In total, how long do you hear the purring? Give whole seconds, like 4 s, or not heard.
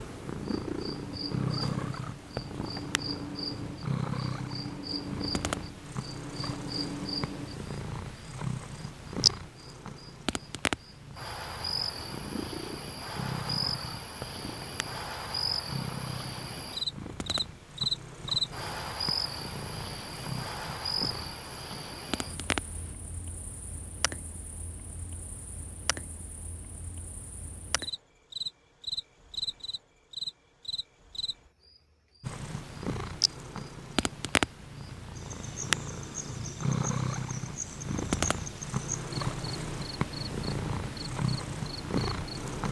33 s.